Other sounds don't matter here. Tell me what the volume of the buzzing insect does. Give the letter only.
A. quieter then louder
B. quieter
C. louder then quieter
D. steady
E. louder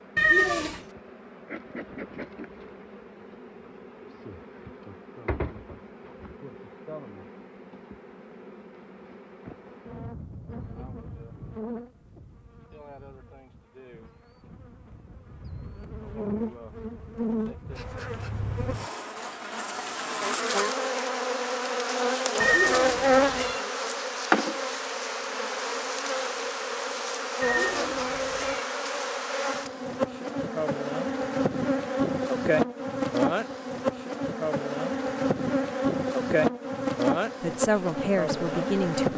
E.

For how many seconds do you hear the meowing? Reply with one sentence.
The meowing can be heard for 3 seconds in total.